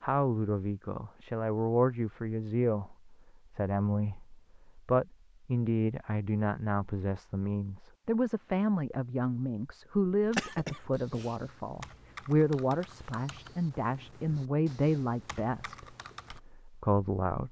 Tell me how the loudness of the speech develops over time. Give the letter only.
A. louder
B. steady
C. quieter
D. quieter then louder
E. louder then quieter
B.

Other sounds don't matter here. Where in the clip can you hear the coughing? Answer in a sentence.
The coughing can be heard from 10.2 to 11.3 s.